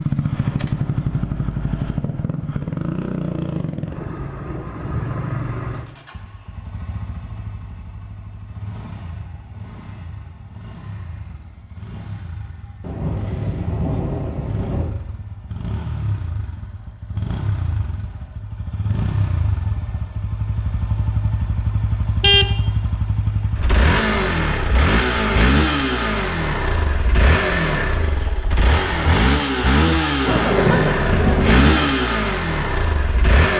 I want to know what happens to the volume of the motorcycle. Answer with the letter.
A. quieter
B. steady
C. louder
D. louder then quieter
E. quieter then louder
E.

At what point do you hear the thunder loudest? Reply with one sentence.
The volume of the thunder peaks at 31 seconds.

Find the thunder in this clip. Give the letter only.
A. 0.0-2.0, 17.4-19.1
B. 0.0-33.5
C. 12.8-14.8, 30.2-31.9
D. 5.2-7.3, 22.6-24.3
C.